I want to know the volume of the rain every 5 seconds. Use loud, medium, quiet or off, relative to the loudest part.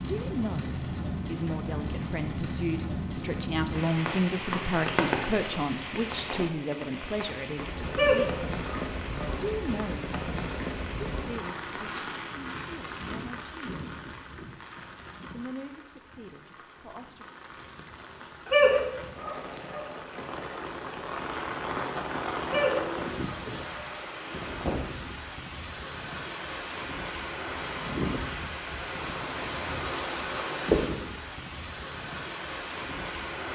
loud, loud, medium, quiet, loud, loud, loud.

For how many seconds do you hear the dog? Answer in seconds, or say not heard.
4 s.